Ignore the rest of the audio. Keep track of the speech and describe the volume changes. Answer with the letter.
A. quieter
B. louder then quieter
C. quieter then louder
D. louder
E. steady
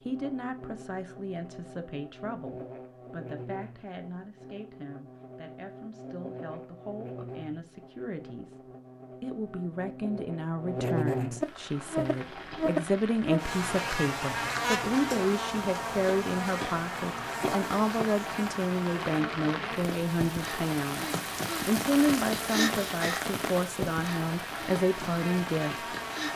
D.